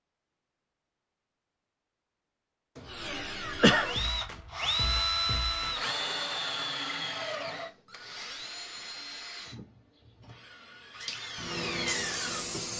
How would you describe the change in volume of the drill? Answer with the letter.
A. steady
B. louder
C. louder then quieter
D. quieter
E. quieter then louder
E.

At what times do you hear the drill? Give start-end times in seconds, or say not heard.
2.9-12.7.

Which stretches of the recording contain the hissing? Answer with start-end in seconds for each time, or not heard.
11.0-12.7.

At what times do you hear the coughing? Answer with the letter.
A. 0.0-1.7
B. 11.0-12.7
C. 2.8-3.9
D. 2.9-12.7
C.